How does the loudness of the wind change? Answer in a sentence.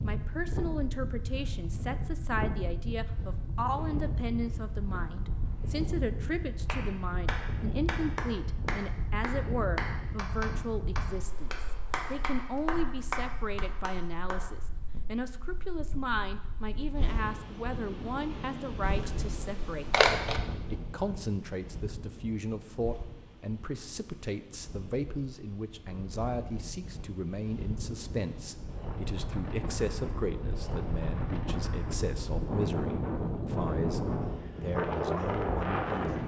The loudness of the wind goes down, then up.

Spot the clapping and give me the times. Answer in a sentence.
The clapping can be heard from 6.7 to 14.4 s.